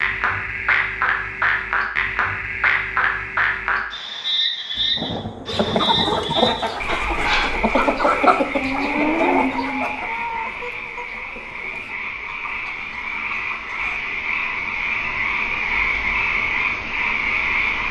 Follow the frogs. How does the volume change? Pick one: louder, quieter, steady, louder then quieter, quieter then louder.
quieter then louder.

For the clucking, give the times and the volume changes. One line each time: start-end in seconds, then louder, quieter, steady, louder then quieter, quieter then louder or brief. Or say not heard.
5.5-14.0 quieter.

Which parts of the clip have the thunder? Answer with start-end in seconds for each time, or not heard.
4.8-6.4.